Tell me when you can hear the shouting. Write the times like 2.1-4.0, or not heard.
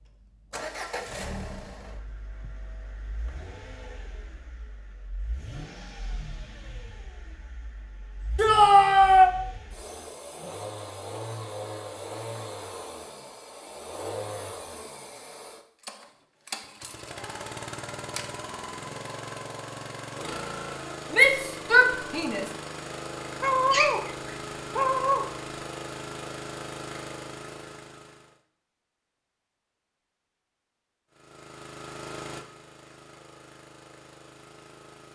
8.3-9.3, 21.1-22.4.